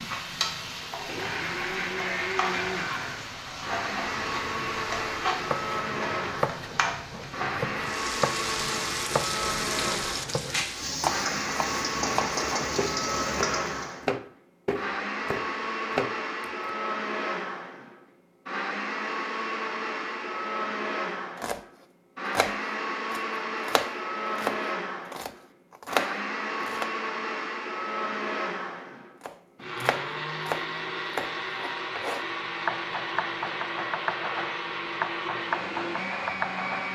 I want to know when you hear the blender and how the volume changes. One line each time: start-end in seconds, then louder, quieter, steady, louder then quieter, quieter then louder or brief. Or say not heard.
0.1-36.9 steady.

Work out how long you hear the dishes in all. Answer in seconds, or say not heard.
not heard.